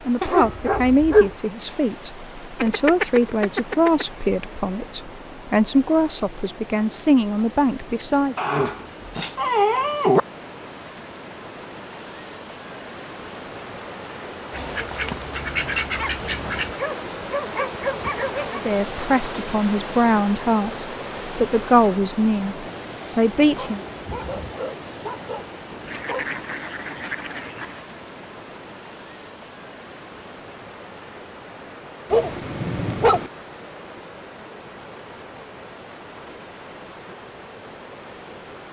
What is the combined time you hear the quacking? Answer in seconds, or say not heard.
6 s.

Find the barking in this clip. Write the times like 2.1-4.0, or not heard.
0.2-1.3, 8.3-10.2, 15.9-18.6, 23.4-26.4, 32.1-33.3.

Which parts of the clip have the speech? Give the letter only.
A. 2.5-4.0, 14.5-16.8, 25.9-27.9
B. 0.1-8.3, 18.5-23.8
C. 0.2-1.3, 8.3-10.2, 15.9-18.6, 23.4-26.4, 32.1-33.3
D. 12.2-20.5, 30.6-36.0
B.